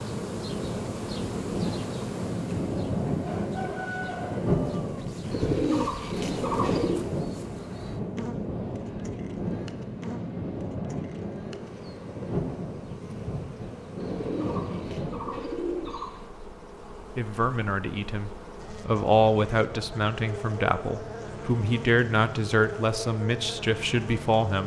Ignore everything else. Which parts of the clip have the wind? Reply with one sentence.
You can hear the wind from 0.0 to 15.4 s.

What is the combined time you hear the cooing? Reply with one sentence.
You can hear the cooing for 4 seconds altogether.